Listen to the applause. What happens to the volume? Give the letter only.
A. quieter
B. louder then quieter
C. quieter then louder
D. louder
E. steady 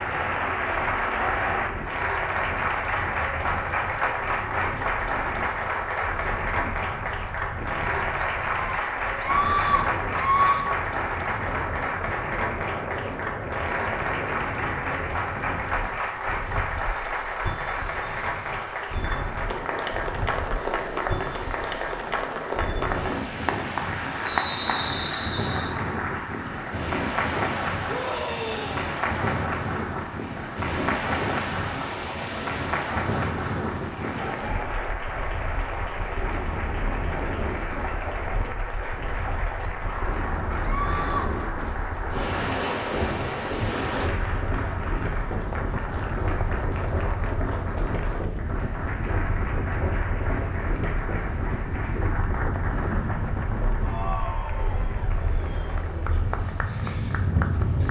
A.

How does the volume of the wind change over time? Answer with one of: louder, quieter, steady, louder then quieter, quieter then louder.
louder.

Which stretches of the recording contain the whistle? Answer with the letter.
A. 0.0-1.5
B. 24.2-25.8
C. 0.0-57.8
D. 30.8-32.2
B.